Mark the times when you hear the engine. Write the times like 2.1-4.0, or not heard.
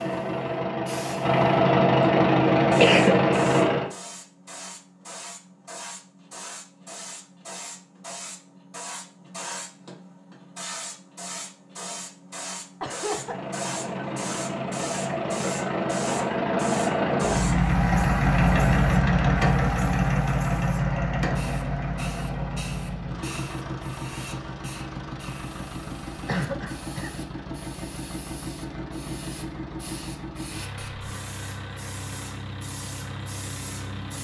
0.0-3.9, 13.2-34.1.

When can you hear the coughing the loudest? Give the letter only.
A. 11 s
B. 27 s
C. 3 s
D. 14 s
C.